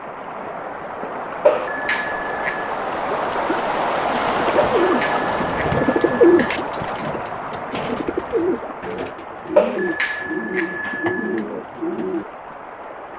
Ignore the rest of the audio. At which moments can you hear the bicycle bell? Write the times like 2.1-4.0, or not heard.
1.4-2.8, 4.8-6.6, 9.6-11.4.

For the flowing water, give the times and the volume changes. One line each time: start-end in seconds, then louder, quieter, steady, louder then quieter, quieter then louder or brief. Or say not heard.
0.0-13.1 louder then quieter.